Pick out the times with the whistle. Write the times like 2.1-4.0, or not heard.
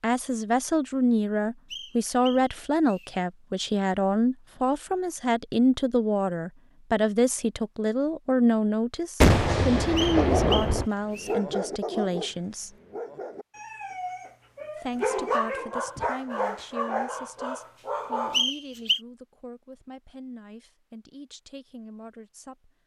1.7-3.1, 9.9-11.3, 18.3-19.0.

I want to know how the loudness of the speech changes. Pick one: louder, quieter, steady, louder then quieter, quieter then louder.
quieter.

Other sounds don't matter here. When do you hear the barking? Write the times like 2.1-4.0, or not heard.
10.2-18.4.